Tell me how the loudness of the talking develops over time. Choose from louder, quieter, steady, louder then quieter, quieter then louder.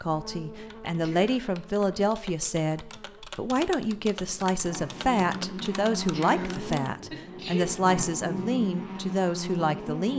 steady.